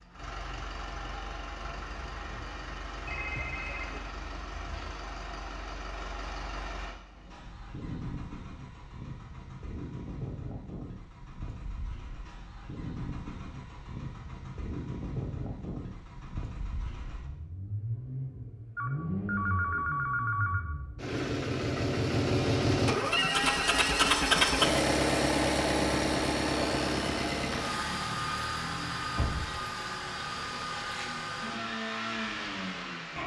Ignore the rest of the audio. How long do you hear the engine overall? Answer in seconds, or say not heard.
33 s.